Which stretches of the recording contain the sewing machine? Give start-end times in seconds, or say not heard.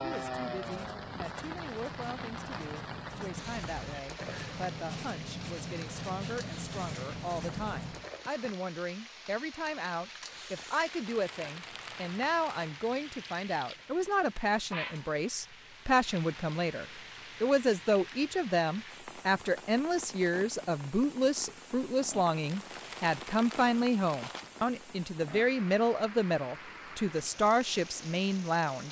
not heard.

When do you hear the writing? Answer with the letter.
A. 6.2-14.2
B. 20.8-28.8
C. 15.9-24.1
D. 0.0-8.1
D.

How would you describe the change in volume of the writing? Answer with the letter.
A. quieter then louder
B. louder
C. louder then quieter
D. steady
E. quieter
B.